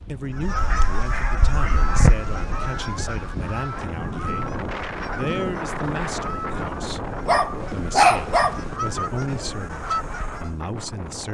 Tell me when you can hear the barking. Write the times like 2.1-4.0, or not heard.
0.7-2.2, 7.2-8.6.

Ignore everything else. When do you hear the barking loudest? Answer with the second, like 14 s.
8 s.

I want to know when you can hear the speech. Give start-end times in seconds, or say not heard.
0.1-11.2.